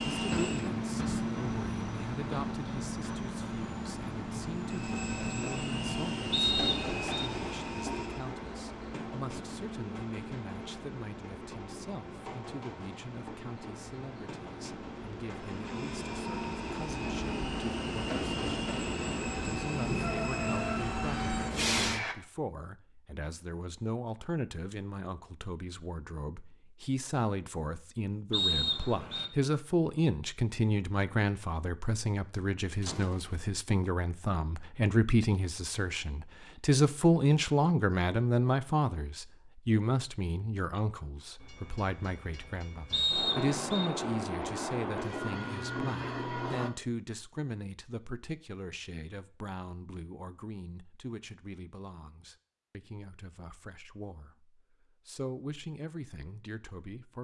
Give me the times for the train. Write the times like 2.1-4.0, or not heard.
0.0-22.1, 41.4-46.7.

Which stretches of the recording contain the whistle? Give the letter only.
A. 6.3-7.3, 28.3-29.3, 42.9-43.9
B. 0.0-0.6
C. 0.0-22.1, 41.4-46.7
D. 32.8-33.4
A.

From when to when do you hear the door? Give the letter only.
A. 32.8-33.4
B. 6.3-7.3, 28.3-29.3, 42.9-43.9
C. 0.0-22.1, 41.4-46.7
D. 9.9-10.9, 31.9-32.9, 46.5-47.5
A.